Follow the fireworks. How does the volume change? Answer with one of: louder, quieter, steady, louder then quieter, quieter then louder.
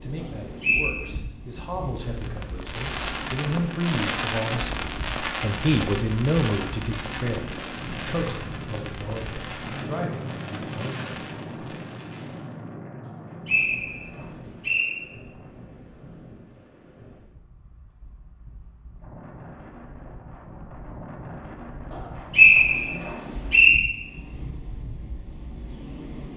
quieter.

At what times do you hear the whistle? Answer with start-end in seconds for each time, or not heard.
0.2-0.9, 13.1-14.9, 21.9-23.8.